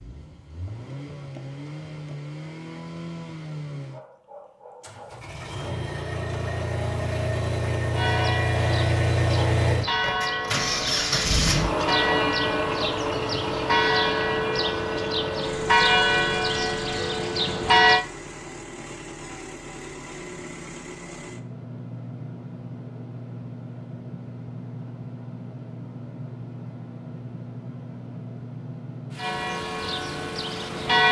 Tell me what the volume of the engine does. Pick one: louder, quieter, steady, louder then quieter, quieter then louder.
louder then quieter.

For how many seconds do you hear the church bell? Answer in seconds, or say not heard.
12 s.